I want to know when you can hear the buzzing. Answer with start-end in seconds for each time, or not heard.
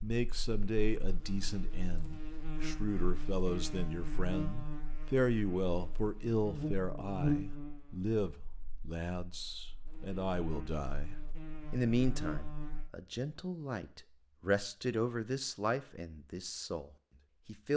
0.1-12.9.